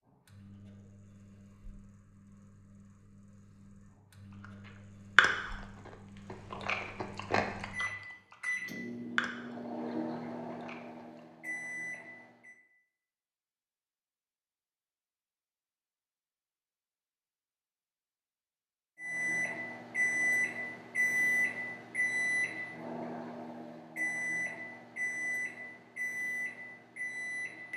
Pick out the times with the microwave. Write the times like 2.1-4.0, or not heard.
0.1-12.6, 18.9-27.7.